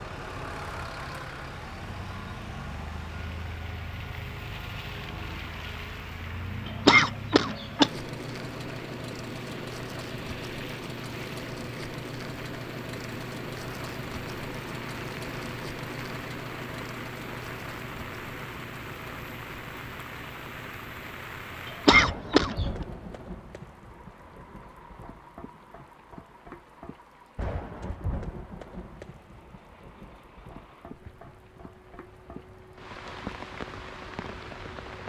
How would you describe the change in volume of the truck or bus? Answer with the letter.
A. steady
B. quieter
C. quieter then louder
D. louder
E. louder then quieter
B.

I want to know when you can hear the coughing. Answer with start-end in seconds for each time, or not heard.
6.7-7.9, 21.6-22.6.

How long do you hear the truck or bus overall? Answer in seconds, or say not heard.
35 s.